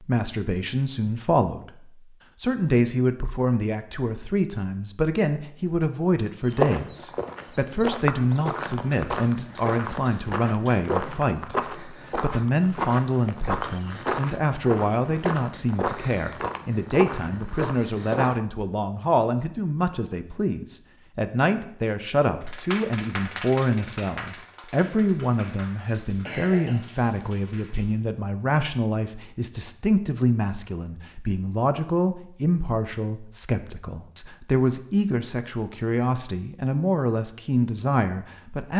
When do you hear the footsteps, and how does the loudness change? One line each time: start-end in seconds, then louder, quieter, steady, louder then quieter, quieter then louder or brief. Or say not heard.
6.5-18.4 steady.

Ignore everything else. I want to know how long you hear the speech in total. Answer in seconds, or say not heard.
39 s.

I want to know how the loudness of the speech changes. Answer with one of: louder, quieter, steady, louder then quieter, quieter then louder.
steady.